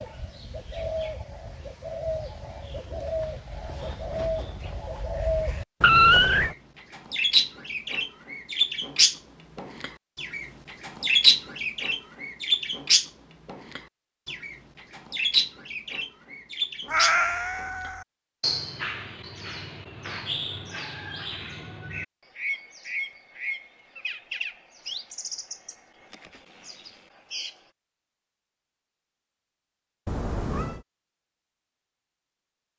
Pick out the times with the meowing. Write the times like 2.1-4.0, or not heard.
5.8-6.5, 16.9-18.1, 30.1-30.9.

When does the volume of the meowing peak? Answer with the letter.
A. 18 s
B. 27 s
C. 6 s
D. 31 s
C.